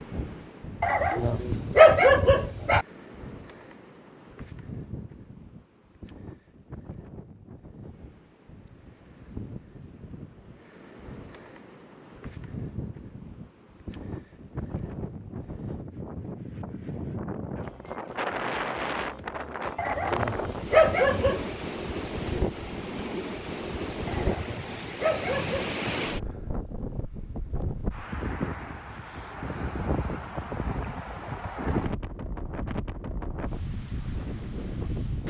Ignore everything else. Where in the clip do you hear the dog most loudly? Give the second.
2 s.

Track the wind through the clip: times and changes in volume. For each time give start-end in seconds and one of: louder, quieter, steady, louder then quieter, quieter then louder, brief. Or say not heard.
0.0-35.2 louder.